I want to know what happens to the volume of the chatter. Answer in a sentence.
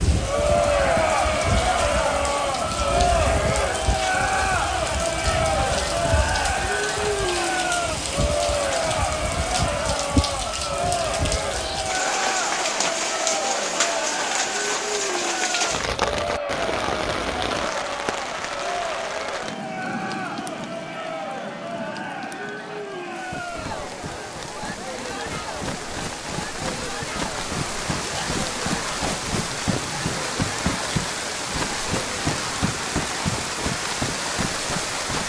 The volume of the chatter goes down.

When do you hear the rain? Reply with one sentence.
The rain can be heard from 0.0 to 35.2 s.